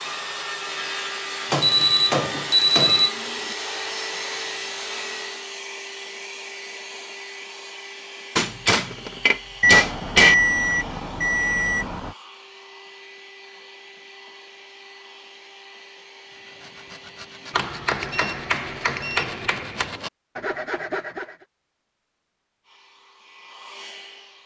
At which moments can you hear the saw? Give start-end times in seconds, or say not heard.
0.0-5.5, 16.2-21.4.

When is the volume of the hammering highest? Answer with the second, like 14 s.
10 s.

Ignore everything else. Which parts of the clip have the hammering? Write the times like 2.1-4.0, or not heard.
1.5-3.1, 8.3-10.3, 17.5-19.9.